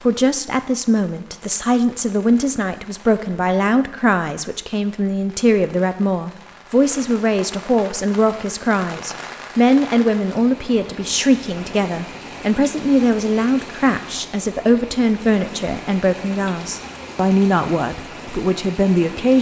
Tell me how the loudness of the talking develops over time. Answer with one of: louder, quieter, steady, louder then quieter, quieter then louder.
steady.